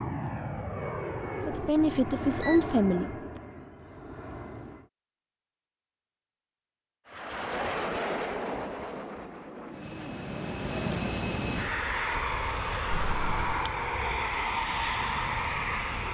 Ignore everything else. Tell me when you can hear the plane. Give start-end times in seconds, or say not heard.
0.0-4.8, 7.0-16.0.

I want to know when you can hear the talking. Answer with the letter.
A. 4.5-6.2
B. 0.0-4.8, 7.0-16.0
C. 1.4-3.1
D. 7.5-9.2
C.